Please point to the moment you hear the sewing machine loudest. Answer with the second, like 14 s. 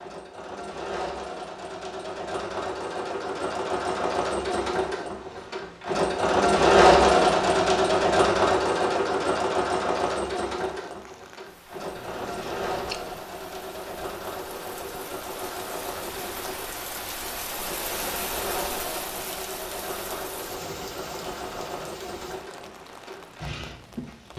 7 s.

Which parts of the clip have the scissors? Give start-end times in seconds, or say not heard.
11.9-13.0.